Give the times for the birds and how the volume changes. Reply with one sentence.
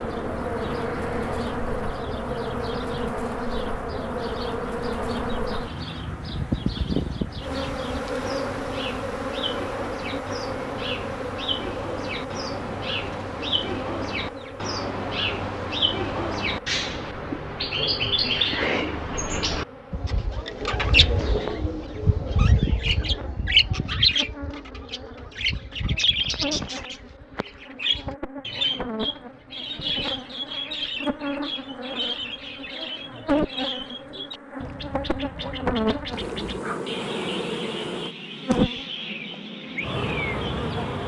The birds can be heard from 0.0 to 41.0 s, getting louder then quieter.